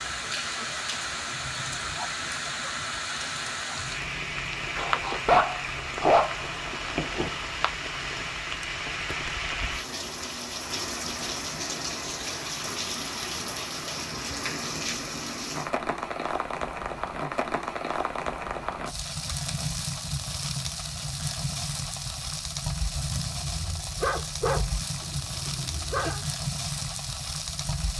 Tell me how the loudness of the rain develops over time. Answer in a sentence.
The loudness of the rain stays about the same.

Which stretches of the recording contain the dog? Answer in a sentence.
You can hear the dog from 4.8 to 7.3 s and from 23.4 to 26.2 s.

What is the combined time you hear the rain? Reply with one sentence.
The rain can be heard for 28 seconds in total.